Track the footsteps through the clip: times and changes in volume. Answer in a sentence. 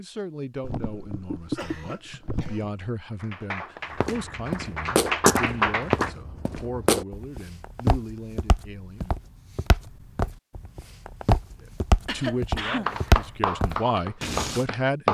The footsteps can be heard from 4.0 to 14.7 s, getting quieter then louder.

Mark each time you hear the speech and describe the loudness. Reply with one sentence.
The speech can be heard from 0.0 to 9.2 s, at a steady volume; and briefly from 12.1 to 15.0 s.